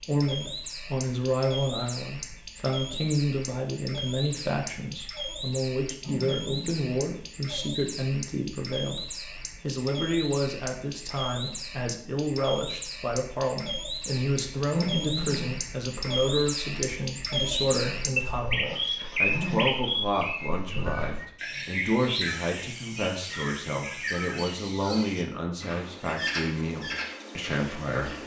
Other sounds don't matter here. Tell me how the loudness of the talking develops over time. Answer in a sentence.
The volume of the talking stays about the same.